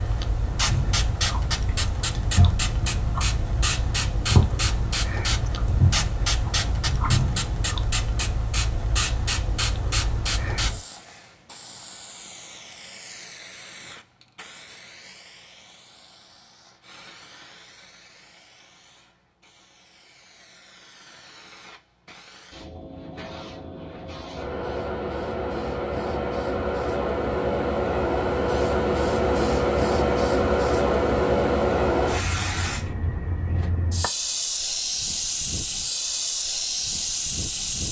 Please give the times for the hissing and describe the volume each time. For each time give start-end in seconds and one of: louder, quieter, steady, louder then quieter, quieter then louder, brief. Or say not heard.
0.0-37.8 quieter then louder.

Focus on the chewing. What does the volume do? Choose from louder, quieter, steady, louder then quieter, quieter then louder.
louder.